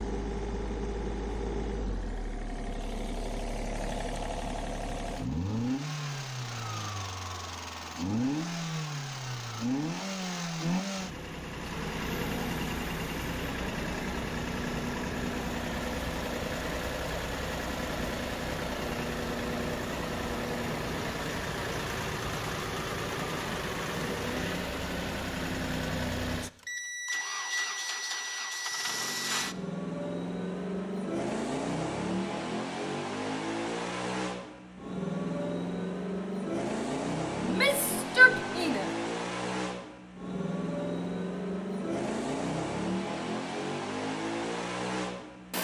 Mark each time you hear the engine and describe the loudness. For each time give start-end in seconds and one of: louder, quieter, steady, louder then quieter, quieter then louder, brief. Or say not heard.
0.0-45.5 steady.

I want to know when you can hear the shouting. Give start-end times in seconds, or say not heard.
37.4-38.9.